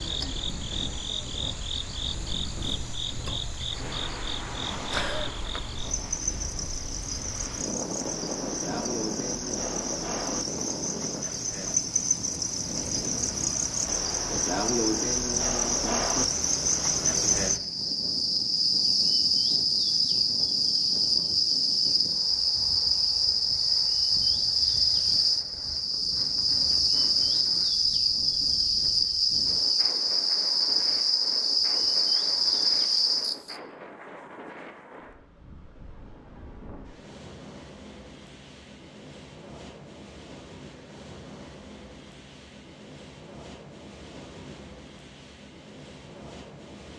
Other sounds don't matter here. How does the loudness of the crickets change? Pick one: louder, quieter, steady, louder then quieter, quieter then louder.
louder.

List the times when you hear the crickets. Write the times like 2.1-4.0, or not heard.
0.0-33.6.